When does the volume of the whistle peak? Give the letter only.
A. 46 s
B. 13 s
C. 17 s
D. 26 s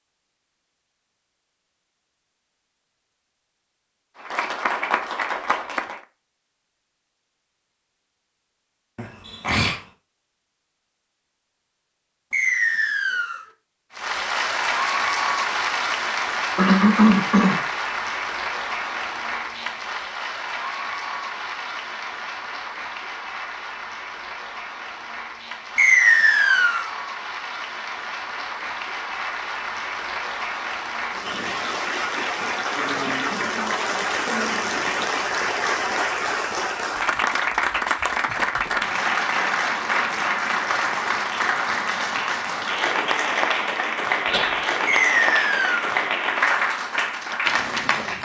D.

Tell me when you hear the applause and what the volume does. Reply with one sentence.
The applause can be heard briefly from 4.2 to 6.0 s; and from 13.9 to 48.1 s, getting quieter then louder.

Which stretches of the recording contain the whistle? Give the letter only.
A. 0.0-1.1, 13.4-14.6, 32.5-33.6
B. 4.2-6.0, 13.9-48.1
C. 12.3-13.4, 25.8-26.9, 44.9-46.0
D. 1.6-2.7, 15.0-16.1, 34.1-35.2
C.